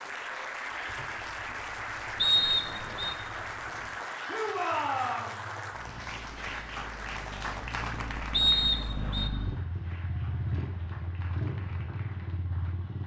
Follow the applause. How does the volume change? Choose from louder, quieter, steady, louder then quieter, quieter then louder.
quieter.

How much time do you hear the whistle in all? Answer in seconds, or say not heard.
2 s.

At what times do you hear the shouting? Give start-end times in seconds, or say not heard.
4.2-5.3.